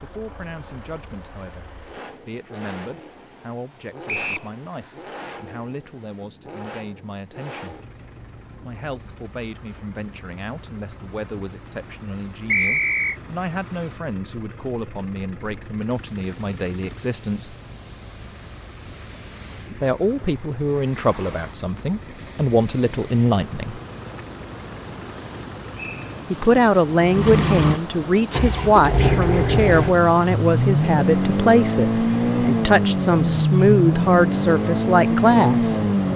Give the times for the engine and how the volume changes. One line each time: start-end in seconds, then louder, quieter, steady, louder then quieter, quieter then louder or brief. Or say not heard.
0.0-36.1 louder.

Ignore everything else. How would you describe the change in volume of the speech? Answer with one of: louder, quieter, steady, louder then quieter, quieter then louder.
louder.